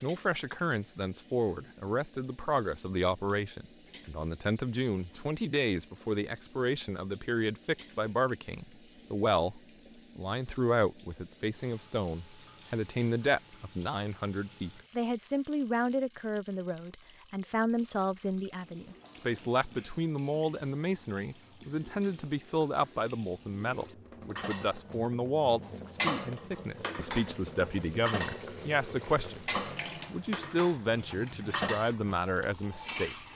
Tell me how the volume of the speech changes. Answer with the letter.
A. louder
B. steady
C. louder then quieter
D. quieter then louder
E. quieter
B.